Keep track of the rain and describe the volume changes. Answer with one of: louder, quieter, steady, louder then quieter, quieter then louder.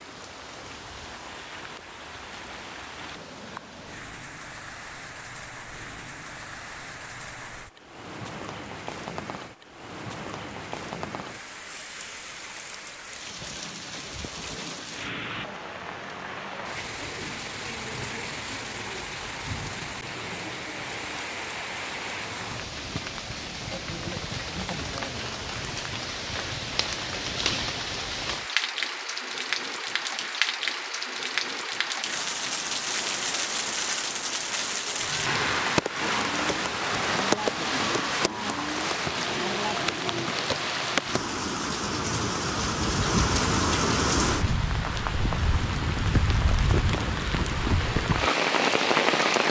louder.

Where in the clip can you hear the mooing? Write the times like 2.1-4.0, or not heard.
35.0-40.3.